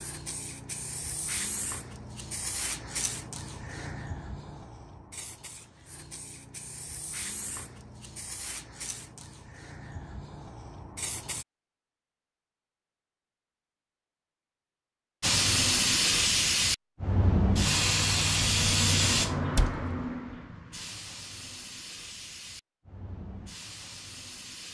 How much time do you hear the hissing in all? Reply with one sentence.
The hissing can be heard for 21 seconds in total.